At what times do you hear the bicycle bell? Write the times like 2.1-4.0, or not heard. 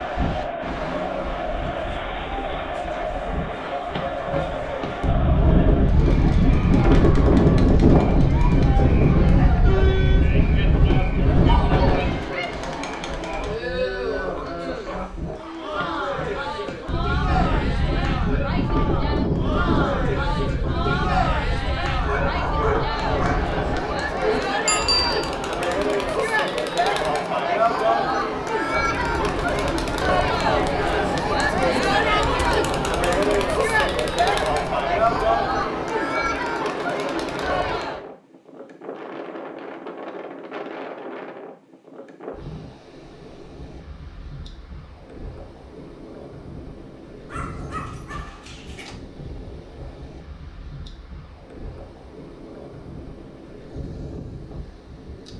24.6-25.3.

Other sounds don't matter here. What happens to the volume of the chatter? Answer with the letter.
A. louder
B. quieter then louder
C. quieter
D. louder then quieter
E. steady
A.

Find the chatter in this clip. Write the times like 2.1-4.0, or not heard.
0.0-38.0.